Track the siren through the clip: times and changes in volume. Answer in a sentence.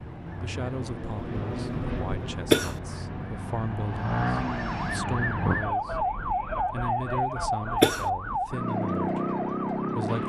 You can hear the siren from 0.0 to 10.2 s, getting louder.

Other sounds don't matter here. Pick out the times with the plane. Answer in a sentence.
The plane can be heard from 0.0 to 5.0 s.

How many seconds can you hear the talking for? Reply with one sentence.
You can hear the talking for 9 seconds altogether.